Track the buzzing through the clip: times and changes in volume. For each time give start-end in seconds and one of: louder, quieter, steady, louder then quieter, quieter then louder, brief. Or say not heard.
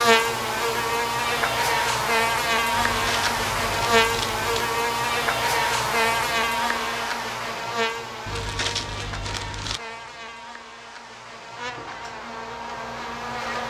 0.0-13.6 quieter.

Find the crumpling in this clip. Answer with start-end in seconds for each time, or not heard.
2.7-4.7, 8.2-9.8.